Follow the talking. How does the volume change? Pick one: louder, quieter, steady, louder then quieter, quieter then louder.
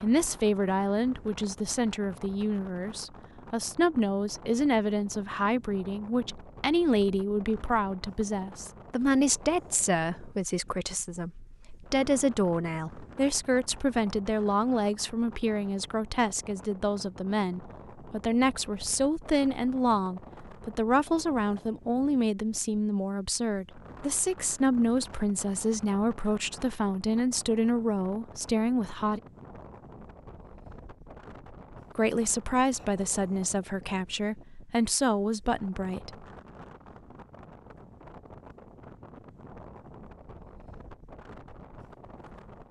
steady.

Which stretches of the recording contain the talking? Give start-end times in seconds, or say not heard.
0.0-29.2, 31.9-36.2.